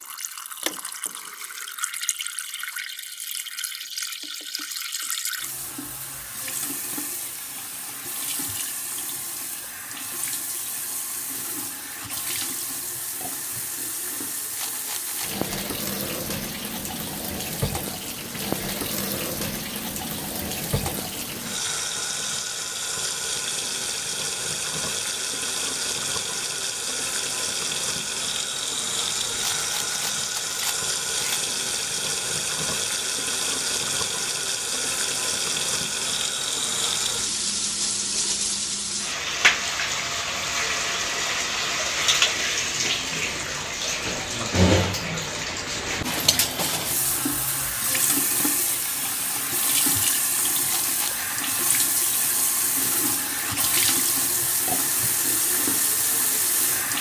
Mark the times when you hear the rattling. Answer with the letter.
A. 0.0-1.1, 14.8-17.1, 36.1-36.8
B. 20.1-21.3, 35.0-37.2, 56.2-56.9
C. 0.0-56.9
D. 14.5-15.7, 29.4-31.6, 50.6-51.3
D.